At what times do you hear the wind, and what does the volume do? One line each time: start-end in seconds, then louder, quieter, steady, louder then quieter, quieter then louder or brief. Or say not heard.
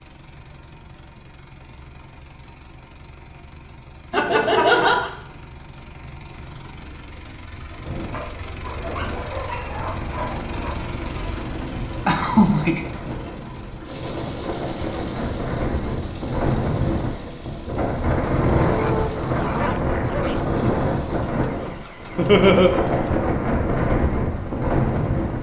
7.8-25.3 louder.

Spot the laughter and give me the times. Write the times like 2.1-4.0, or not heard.
4.1-5.1, 12.1-12.8, 22.1-22.7.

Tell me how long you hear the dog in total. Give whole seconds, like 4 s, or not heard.
5 s.